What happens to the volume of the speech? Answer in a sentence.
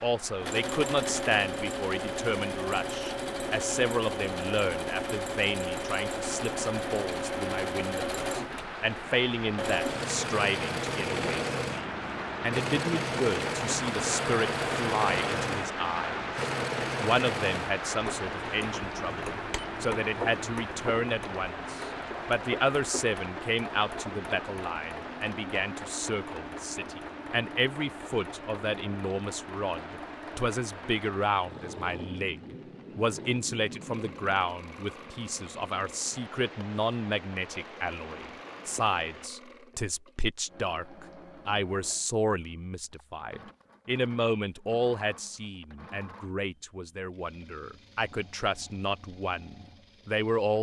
The volume of the speech stays about the same.